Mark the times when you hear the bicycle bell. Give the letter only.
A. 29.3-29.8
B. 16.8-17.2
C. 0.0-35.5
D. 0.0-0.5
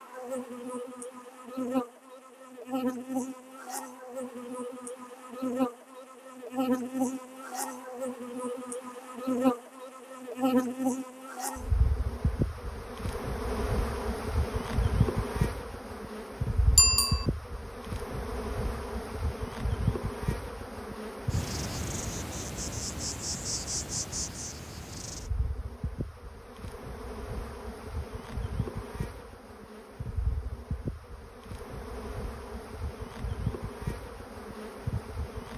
B.